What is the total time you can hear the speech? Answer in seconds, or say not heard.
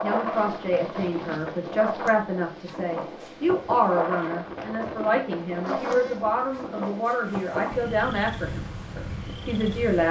10 s.